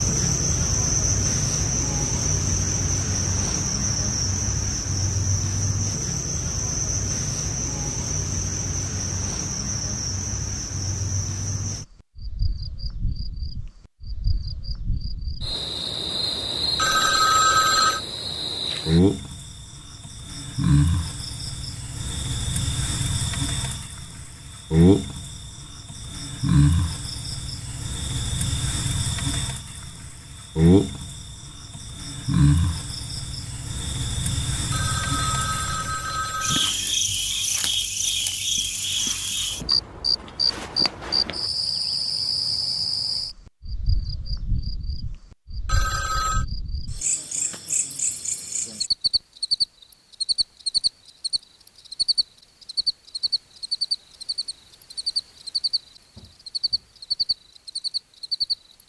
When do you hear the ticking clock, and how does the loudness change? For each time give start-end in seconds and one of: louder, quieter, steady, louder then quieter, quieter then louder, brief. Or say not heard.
not heard.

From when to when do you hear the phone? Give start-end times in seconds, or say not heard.
16.8-18.0, 34.7-36.8, 45.6-46.5.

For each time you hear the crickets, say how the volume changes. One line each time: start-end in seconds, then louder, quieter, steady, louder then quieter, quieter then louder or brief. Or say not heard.
0.0-58.8 steady.